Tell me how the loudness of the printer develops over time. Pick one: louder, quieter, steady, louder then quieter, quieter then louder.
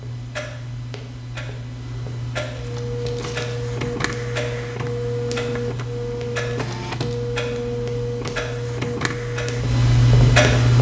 steady.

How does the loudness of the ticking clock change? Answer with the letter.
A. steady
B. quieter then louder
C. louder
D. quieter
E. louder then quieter
C.